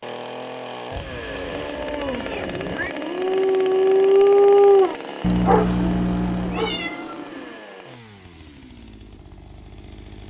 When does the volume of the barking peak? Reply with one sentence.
The loudest moment of the barking is at 5 seconds.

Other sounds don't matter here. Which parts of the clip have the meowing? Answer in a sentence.
You can hear the meowing from 0.9 to 3.0 s and from 5.6 to 7.7 s.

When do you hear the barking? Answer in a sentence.
The barking can be heard from 1.2 to 6.9 s.